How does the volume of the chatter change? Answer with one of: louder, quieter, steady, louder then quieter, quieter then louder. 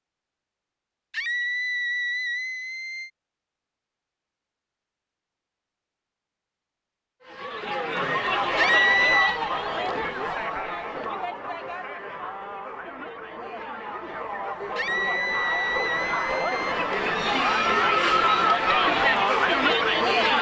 quieter then louder.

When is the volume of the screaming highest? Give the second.
9 s.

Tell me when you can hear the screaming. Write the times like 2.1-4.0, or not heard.
1.1-3.1, 8.6-9.4, 14.8-16.8.